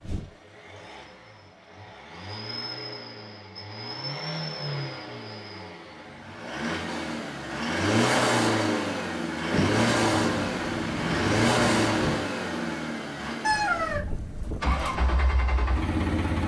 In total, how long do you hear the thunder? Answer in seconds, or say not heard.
3 s.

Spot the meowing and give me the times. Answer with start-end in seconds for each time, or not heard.
not heard.